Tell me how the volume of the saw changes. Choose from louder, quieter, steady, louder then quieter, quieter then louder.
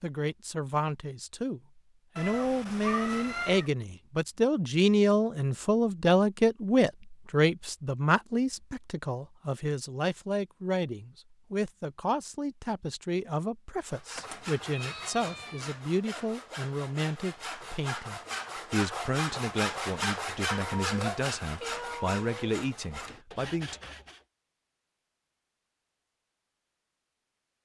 louder then quieter.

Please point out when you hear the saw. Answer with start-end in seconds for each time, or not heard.
13.8-24.2.